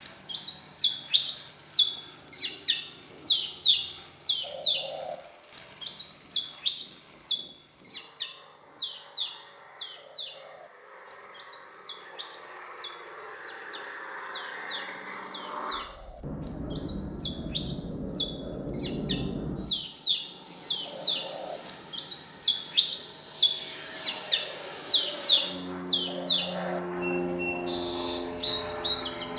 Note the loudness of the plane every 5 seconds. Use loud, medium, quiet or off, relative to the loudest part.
quiet, quiet, medium, loud, loud, loud.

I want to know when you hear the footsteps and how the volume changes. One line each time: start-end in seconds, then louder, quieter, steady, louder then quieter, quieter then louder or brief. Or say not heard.
not heard.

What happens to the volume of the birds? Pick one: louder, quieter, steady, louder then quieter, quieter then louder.
quieter then louder.